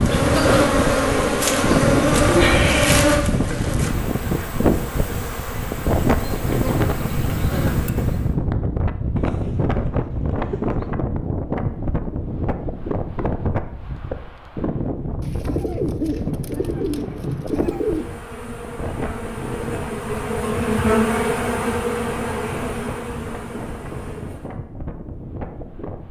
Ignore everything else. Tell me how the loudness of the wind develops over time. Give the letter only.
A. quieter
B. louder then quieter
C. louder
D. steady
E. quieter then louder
A.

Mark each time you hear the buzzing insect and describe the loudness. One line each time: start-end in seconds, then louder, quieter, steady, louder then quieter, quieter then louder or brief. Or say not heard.
0.0-8.3 quieter
17.6-24.6 louder then quieter.